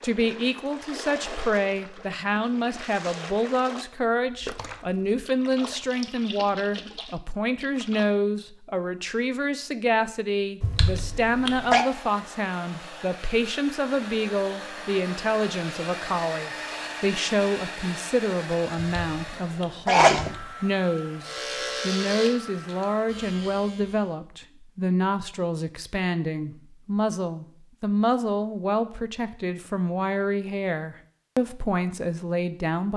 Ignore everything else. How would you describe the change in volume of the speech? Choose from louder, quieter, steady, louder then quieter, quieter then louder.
steady.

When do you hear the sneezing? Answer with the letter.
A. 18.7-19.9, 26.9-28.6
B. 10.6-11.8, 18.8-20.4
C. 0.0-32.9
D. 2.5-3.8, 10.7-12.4
B.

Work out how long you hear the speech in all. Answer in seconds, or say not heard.
33 s.